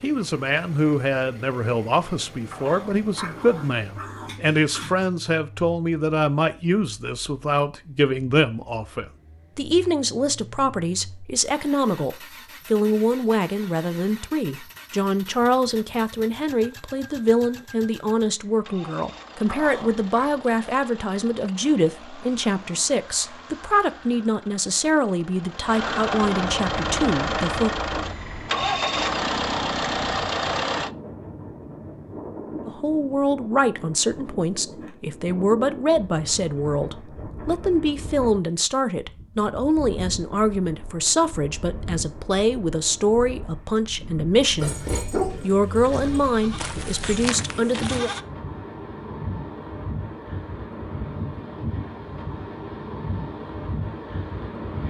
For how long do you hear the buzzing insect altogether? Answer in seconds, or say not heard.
not heard.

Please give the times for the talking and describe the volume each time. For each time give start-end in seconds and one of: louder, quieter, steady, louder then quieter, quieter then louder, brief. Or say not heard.
0.0-27.8 steady
32.6-44.8 steady
45.4-48.1 brief.